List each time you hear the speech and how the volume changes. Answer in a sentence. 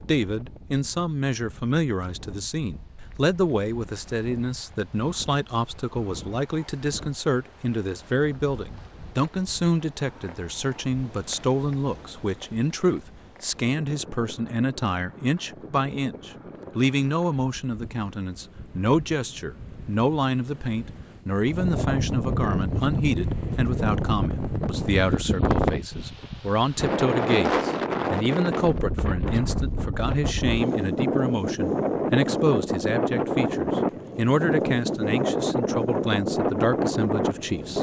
You can hear the speech from 0.0 to 37.7 s, at a steady volume.